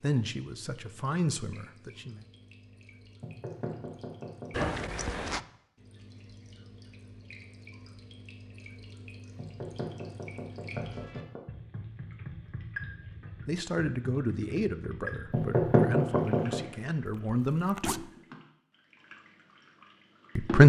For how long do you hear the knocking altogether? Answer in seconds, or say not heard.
5 s.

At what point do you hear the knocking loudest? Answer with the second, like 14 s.
16 s.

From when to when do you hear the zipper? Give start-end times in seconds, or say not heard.
4.5-5.4, 17.2-18.0.